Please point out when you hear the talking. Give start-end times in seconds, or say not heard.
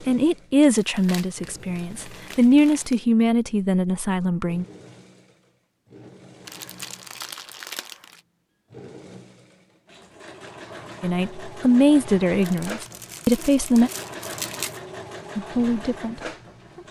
0.1-4.7, 11.0-13.9, 15.3-16.8.